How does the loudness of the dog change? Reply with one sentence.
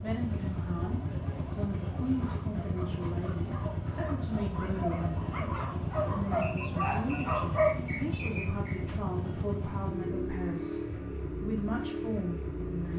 The volume of the dog goes up.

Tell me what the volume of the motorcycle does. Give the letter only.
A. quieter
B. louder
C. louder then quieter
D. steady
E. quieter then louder
D.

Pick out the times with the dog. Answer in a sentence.
The dog can be heard from 0.8 to 7.8 s.